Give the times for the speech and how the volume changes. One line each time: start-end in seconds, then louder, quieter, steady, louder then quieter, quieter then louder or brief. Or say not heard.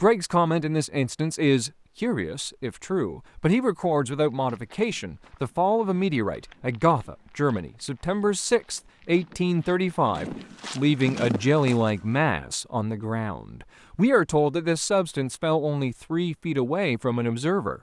0.0-17.7 steady.